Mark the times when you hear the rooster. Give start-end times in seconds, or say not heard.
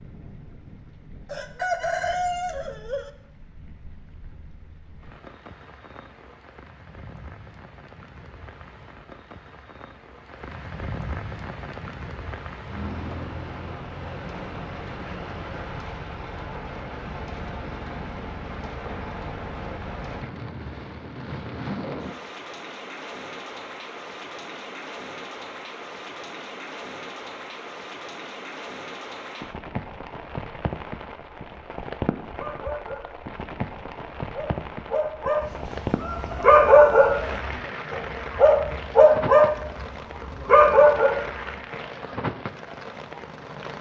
1.2-3.1, 35.4-37.4.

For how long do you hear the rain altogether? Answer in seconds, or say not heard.
44 s.